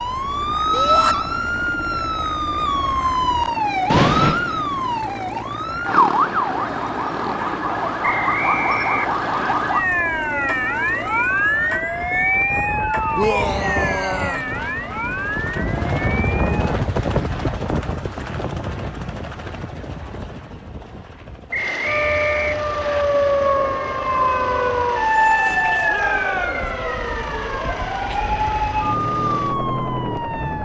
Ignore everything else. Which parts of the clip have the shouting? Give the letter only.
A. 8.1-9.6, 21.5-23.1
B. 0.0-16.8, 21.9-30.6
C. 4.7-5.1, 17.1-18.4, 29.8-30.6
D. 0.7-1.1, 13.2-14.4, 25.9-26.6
D.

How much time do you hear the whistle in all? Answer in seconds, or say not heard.
3 s.